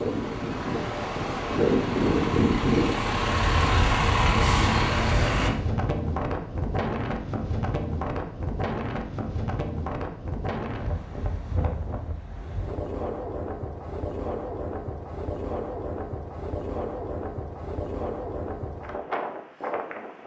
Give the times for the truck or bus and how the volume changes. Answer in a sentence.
The truck or bus can be heard from 0.0 to 5.5 s, getting louder.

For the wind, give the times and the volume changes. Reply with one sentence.
The wind can be heard from 0.0 to 20.2 s, getting quieter.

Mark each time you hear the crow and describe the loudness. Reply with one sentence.
You can't hear the crow here.